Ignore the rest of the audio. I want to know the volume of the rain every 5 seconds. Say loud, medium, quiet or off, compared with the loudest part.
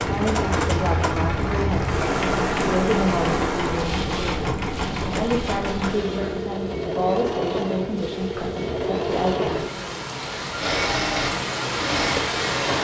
loud, medium, loud.